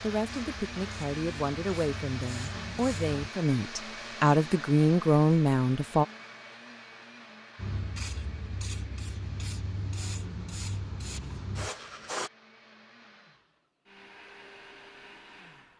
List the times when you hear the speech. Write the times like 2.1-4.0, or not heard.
0.0-6.0.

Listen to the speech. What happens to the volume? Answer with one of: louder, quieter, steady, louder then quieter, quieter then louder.
louder.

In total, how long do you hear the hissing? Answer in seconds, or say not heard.
8 s.